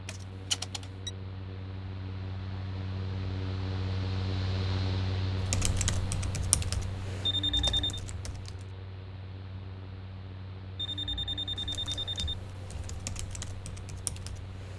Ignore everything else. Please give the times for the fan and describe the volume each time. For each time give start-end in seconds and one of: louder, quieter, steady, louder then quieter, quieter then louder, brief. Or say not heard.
0.0-14.7 louder then quieter.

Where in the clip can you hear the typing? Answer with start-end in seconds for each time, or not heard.
5.3-8.7, 11.6-14.7.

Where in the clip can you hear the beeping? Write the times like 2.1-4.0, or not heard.
0.1-1.1, 7.2-8.0, 10.8-12.3.